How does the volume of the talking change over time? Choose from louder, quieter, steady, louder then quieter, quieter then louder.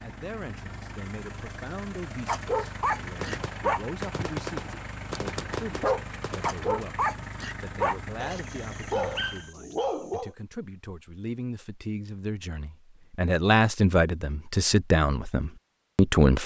louder.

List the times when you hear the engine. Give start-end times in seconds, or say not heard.
0.0-9.5.